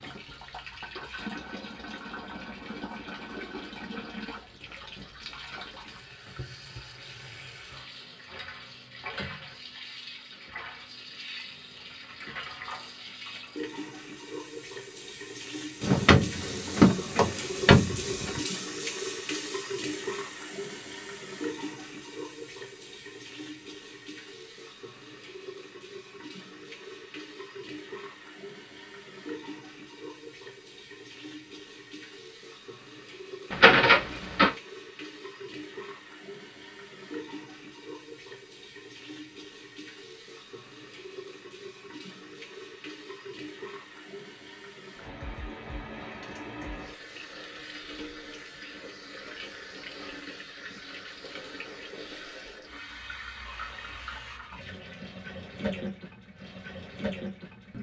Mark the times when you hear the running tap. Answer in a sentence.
You can hear the running tap from 0.0 to 57.7 s.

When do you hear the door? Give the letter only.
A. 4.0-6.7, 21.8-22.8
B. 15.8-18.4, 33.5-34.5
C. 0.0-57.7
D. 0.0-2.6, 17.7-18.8
B.